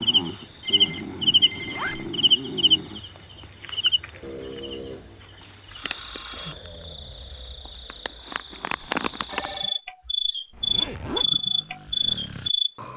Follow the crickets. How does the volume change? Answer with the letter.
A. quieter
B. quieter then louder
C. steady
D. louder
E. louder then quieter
B.